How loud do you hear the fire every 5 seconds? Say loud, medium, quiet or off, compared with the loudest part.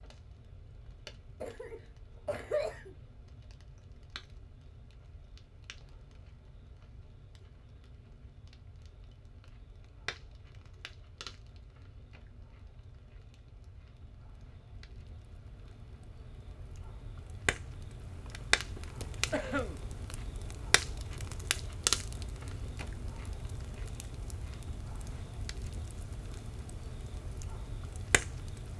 quiet, quiet, quiet, loud, loud, medium.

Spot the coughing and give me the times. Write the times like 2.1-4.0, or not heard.
1.4-3.0, 19.3-19.8.